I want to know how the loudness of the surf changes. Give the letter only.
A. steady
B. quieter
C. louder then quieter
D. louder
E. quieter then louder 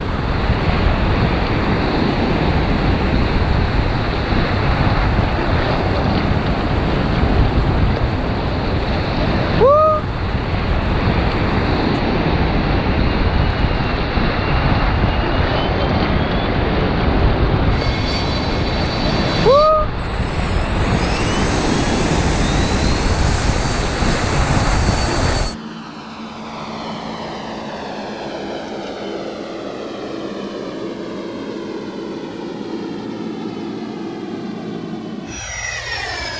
A.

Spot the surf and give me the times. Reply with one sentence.
The surf can be heard from 0.0 to 25.6 s.